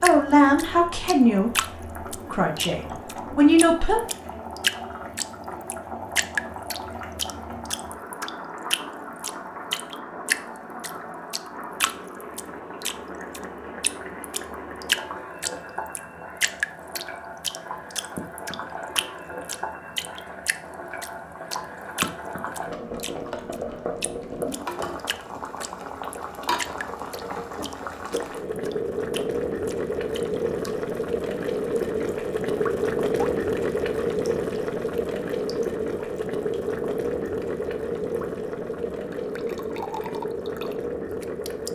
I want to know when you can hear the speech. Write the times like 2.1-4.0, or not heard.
0.0-4.0.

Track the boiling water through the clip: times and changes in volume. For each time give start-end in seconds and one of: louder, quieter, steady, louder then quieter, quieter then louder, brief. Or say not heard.
0.0-41.7 louder.